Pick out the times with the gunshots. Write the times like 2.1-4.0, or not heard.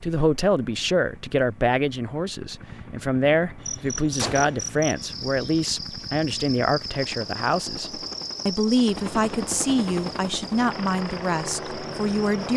4.2-4.8.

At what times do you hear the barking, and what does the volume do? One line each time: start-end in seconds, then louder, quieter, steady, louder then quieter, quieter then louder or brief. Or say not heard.
not heard.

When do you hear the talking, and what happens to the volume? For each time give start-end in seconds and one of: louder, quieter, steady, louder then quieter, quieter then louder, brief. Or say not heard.
0.0-12.5 steady.